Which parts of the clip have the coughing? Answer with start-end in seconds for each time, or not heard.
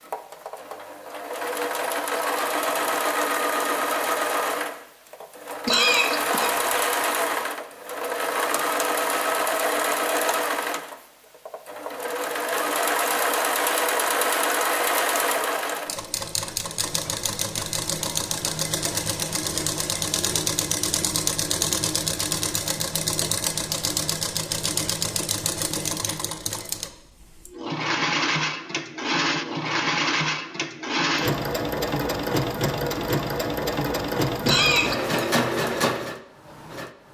5.7-7.0, 34.5-35.3.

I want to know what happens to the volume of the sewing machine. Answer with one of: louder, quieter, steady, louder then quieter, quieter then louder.
steady.